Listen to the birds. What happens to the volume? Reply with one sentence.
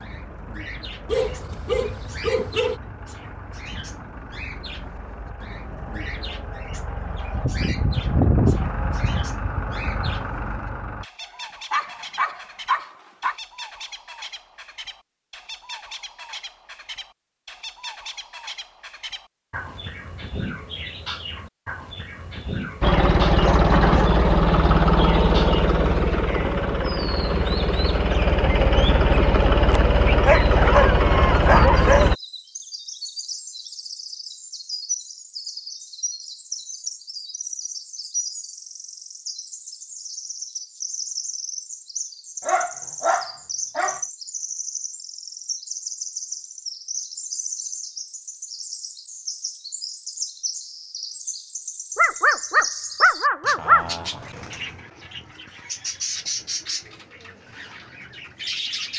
The loudness of the birds goes up.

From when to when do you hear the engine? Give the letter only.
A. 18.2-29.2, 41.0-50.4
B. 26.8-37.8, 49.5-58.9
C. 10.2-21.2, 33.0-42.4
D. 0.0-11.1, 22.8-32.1
D.